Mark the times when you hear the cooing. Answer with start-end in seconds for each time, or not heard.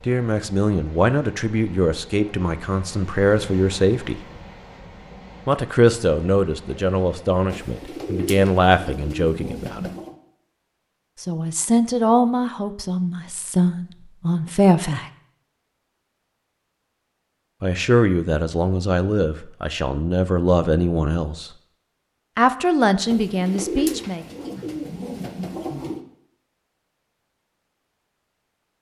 7.5-10.2, 23.1-26.0.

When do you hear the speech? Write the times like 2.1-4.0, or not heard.
0.1-4.2, 5.5-9.9, 11.2-15.1, 17.6-21.5, 22.4-24.2.